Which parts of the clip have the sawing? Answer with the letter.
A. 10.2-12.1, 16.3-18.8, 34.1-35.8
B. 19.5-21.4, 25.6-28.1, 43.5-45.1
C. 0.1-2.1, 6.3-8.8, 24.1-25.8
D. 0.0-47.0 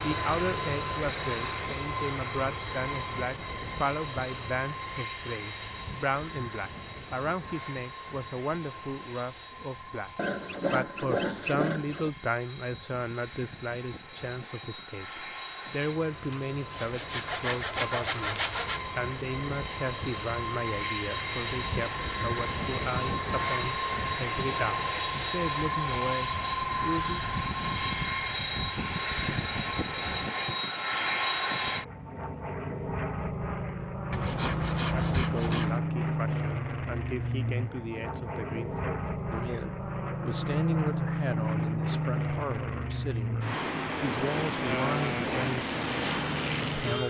A.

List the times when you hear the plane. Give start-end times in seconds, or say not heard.
0.0-47.0.